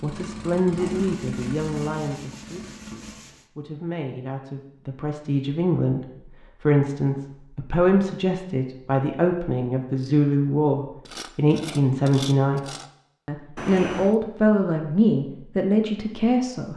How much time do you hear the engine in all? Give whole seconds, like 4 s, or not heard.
3 s.